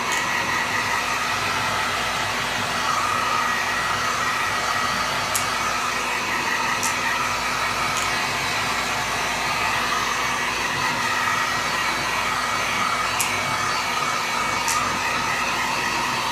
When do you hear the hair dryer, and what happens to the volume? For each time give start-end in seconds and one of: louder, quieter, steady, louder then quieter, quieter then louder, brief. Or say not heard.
0.0-16.2 steady.